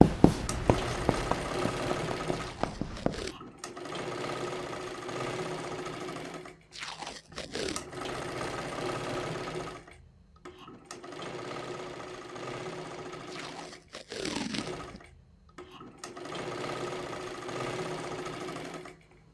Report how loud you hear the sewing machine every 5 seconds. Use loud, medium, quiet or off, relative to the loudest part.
loud, loud, medium, loud.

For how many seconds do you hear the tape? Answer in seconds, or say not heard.
4 s.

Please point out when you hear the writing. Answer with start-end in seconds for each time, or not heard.
0.0-3.3.